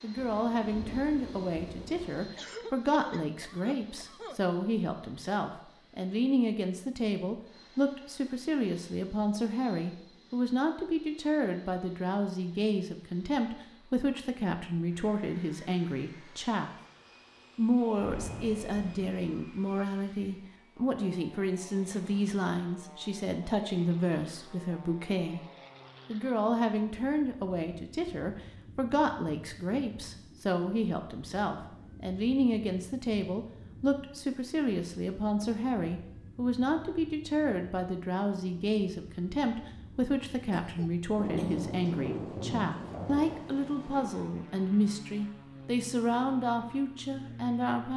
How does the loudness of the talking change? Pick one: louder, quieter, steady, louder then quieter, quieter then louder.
steady.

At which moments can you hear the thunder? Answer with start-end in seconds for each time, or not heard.
0.1-2.2, 17.9-19.1, 41.1-44.2.